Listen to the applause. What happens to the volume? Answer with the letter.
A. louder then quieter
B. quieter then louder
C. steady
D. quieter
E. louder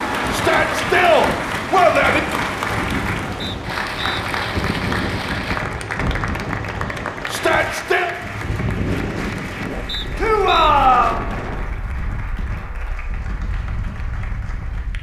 D.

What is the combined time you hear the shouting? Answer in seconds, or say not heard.
4 s.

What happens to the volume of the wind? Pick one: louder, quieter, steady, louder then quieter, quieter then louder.
quieter.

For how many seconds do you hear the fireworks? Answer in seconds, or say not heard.
not heard.